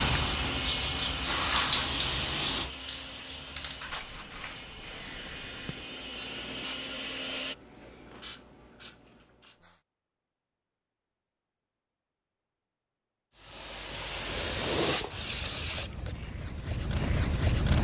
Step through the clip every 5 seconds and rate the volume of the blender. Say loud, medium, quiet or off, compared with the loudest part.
loud, loud, off, off.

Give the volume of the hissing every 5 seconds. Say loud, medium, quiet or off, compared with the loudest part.
loud, quiet, loud, loud.